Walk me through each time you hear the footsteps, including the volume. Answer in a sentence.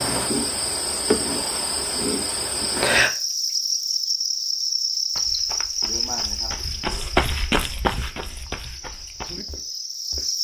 The footsteps can be heard from 5.2 to 10.2 s, getting louder then quieter.